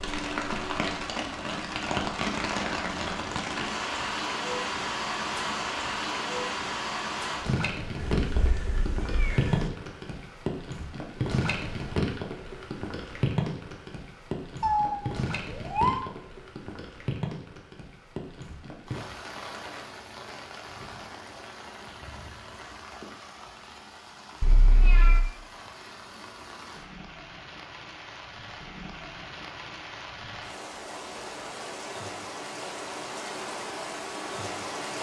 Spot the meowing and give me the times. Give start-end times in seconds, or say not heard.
8.0-9.7, 14.6-16.0, 24.4-25.2.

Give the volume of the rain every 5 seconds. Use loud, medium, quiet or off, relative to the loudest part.
loud, loud, loud, medium, quiet, quiet, medium.